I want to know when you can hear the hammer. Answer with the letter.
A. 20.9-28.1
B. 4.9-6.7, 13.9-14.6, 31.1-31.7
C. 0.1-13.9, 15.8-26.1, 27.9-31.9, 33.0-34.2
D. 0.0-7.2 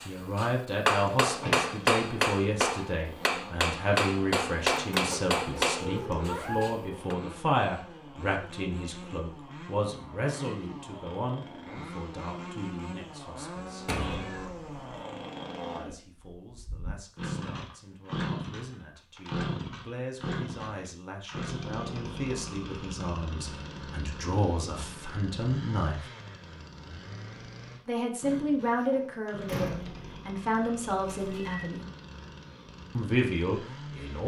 D.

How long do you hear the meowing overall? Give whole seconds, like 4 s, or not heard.
3 s.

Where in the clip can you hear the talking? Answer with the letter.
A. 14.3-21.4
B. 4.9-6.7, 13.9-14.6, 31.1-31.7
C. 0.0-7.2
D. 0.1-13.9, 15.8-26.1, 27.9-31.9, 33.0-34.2
D.